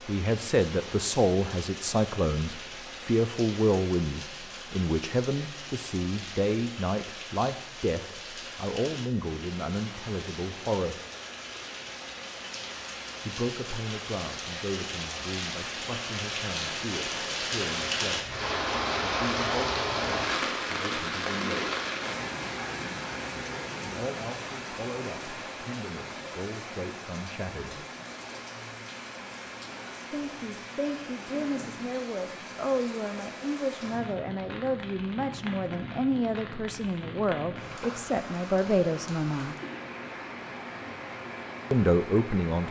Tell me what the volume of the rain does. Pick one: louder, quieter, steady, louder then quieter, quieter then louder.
louder then quieter.